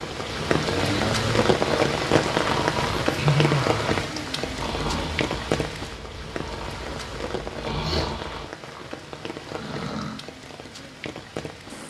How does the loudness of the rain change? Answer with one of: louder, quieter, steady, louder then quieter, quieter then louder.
quieter.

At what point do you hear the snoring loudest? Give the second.
3 s.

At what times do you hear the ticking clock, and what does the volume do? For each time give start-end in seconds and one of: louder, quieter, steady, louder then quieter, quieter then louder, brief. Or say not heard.
not heard.